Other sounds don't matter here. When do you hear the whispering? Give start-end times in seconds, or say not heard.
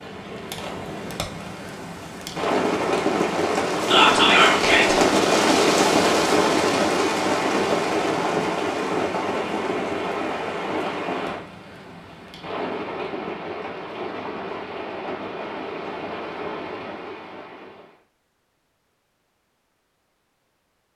3.9-5.0.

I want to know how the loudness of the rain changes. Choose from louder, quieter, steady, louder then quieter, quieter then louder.
louder then quieter.